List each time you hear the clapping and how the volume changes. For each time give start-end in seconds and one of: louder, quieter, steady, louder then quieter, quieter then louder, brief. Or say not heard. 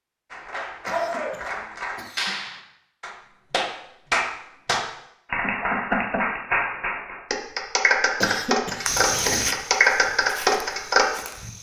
0.3-11.1 louder.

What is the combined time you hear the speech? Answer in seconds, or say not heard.
not heard.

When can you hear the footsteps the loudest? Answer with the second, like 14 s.
9 s.